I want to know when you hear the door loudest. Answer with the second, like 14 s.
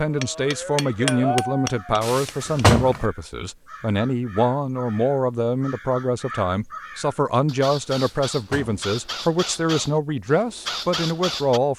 3 s.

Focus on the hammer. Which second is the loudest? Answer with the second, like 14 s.
1 s.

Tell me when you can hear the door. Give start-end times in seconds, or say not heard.
2.0-3.0, 7.9-8.8.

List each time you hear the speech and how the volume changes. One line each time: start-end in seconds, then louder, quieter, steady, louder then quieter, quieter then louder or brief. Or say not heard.
0.0-11.7 steady.